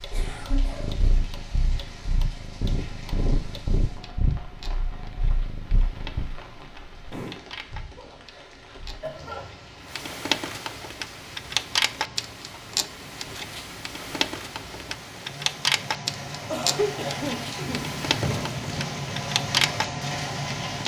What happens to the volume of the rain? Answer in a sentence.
The volume of the rain goes up.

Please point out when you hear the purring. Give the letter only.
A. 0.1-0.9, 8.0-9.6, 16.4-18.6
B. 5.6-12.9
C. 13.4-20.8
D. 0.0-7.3
D.